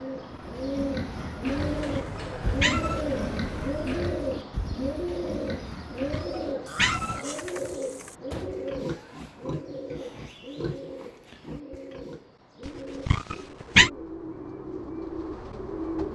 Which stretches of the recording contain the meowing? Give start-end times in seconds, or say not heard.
1.9-3.0, 6.1-7.2, 12.7-13.9.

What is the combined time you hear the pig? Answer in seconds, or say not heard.
12 s.